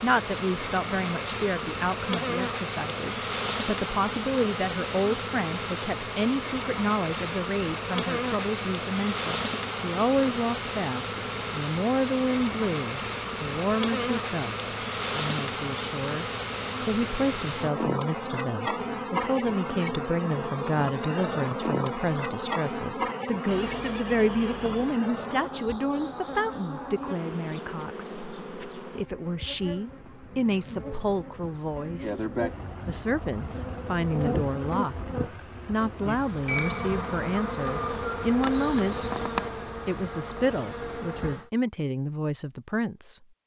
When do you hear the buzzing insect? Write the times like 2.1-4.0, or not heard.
0.0-41.5.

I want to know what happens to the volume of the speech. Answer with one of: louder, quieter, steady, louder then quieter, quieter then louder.
steady.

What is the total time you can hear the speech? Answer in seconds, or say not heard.
42 s.